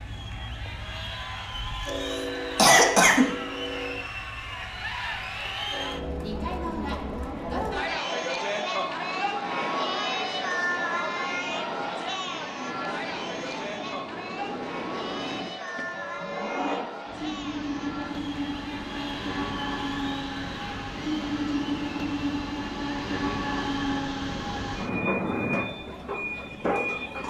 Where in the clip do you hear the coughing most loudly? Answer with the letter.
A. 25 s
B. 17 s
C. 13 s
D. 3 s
D.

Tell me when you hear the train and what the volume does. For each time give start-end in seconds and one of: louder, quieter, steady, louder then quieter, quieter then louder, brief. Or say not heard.
0.0-27.2 louder.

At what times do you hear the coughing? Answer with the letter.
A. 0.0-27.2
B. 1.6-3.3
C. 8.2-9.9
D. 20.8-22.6
B.